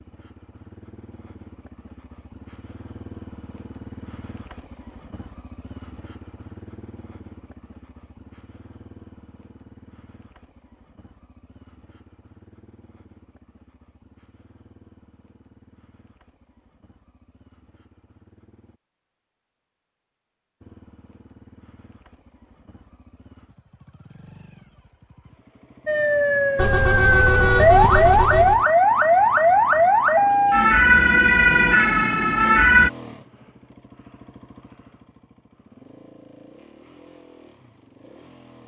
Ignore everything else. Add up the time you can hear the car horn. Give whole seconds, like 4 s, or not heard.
2 s.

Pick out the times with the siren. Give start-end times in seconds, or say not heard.
25.9-32.9.